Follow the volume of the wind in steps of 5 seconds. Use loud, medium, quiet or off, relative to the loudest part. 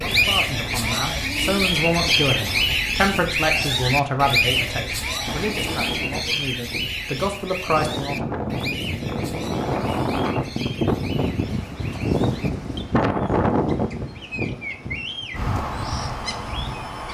quiet, medium, loud, medium.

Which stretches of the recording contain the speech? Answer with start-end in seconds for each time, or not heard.
0.0-8.2.